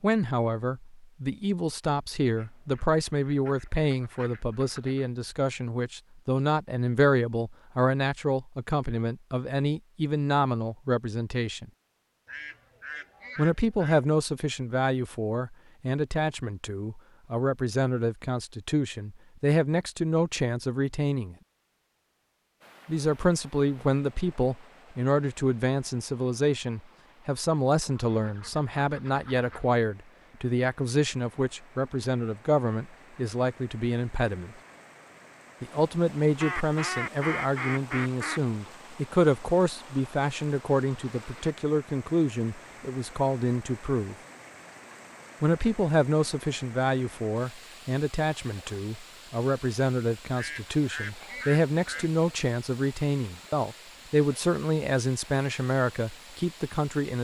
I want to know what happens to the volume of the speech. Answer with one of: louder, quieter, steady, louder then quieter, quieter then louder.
steady.